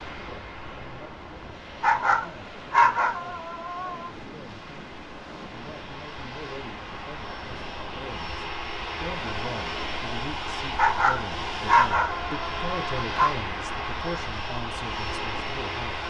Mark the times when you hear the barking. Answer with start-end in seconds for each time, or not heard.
1.8-4.1, 10.8-13.3.